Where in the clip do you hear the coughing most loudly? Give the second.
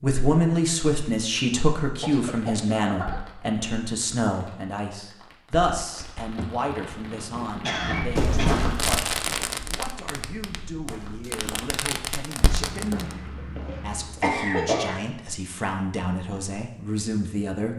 15 s.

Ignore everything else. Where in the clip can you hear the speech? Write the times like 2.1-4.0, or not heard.
0.0-17.7.